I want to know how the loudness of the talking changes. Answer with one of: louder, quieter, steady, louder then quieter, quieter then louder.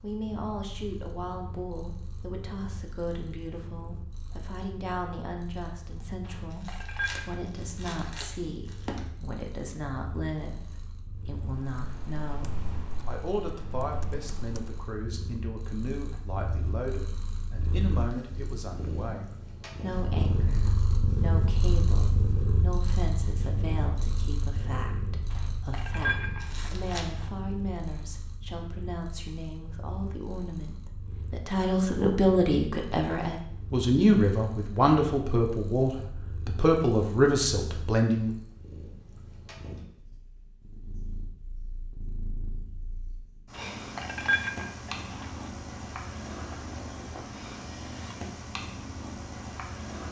louder.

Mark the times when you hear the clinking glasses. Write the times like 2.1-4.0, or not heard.
6.2-7.3, 25.3-27.3, 43.5-45.5.